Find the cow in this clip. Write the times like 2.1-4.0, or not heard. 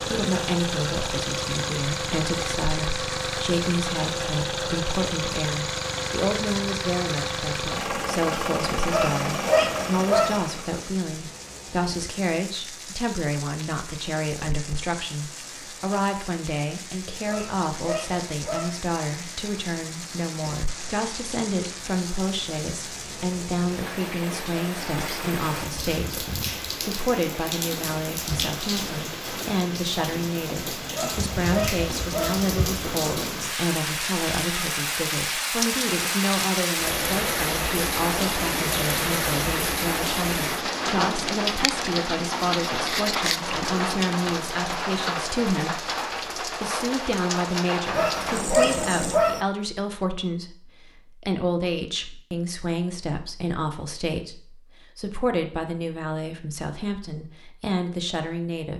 not heard.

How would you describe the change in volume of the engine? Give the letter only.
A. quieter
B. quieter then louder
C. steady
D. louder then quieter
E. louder
C.